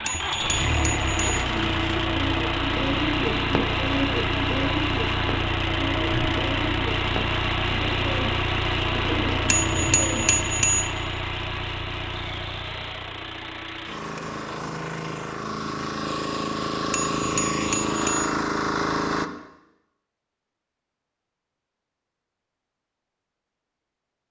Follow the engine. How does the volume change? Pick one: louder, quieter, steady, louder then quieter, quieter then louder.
quieter then louder.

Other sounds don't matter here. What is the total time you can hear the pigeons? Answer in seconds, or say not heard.
9 s.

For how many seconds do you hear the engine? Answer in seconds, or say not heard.
19 s.